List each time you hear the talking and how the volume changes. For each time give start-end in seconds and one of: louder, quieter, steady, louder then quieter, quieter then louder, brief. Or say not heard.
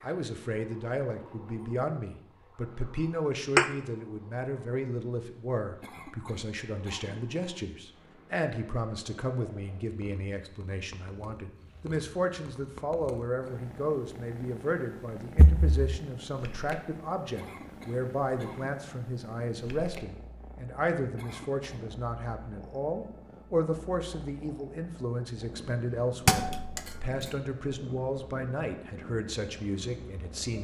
0.0-30.6 steady.